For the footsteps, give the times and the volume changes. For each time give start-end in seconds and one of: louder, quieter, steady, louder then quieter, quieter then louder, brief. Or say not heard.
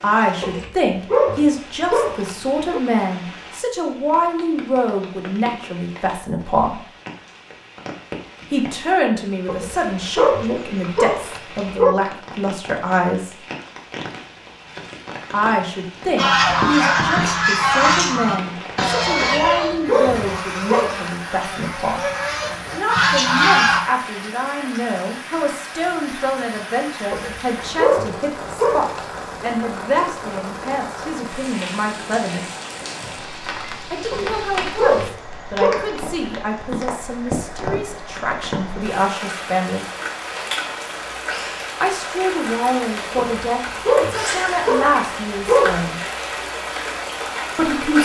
not heard.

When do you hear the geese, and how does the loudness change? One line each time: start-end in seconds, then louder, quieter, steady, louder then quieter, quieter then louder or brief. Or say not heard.
16.1-23.8 quieter then louder.